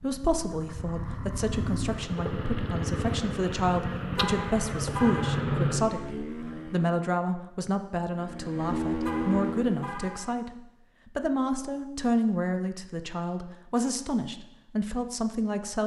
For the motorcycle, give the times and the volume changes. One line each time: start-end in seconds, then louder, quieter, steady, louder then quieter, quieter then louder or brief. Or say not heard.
0.0-7.0 louder
8.1-9.9 brief.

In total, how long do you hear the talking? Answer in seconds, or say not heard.
16 s.